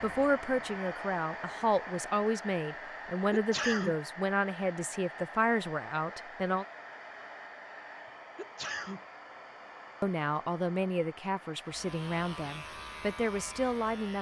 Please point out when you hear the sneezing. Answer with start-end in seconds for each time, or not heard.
3.3-4.0, 8.3-9.0.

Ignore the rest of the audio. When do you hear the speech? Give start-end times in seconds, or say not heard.
0.0-6.7, 10.0-14.1.